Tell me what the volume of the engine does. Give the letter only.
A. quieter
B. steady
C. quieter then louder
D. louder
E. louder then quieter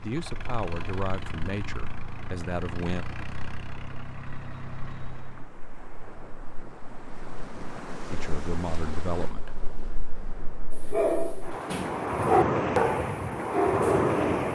B.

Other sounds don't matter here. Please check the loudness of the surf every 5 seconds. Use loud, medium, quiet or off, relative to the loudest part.
quiet, quiet, loud.